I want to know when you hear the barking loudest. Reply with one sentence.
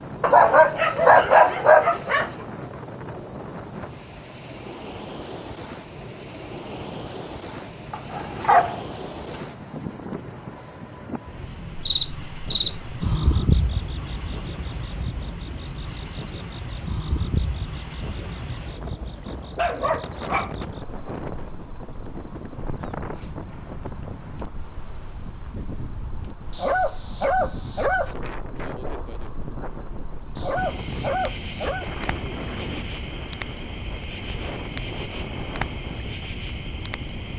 The loudest moment of the barking is at 1 second.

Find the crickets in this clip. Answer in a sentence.
The crickets can be heard from 0.0 to 37.3 s.